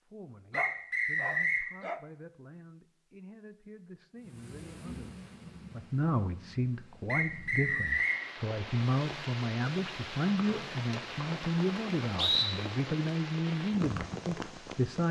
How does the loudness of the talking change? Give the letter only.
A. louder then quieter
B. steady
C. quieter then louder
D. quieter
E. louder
E.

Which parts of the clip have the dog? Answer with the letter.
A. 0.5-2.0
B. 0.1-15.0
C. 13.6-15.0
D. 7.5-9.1
A.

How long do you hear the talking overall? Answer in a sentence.
You can hear the talking for 15 seconds altogether.